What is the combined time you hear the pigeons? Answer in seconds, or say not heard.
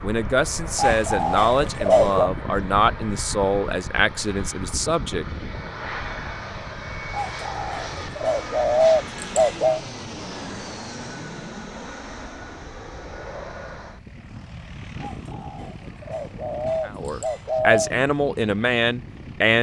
7 s.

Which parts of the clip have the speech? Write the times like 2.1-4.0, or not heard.
0.0-5.2, 16.9-19.5.